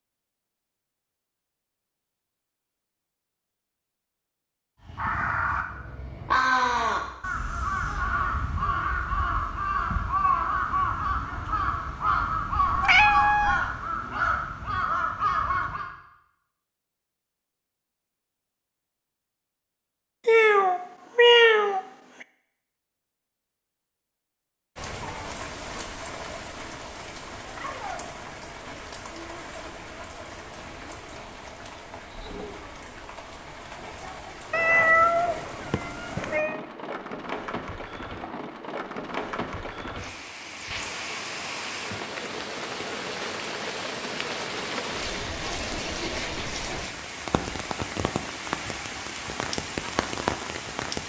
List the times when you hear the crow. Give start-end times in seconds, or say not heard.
4.8-15.9.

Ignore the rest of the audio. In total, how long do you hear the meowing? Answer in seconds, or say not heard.
5 s.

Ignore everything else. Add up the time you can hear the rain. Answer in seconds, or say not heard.
26 s.